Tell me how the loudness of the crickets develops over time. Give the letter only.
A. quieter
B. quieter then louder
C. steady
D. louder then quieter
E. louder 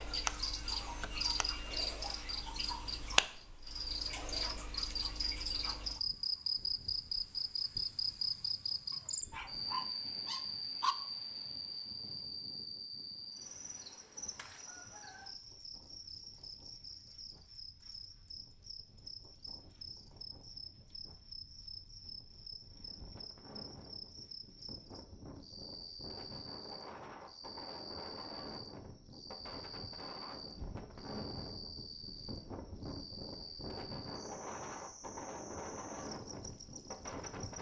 A.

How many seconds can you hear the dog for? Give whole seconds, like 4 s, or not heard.
2 s.